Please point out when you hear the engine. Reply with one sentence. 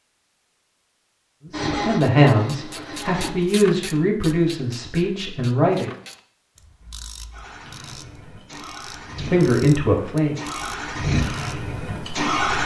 You can hear the engine from 1.5 to 3.3 s and from 6.8 to 12.6 s.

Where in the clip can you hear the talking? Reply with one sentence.
The talking can be heard from 1.4 to 5.9 s and from 9.2 to 10.3 s.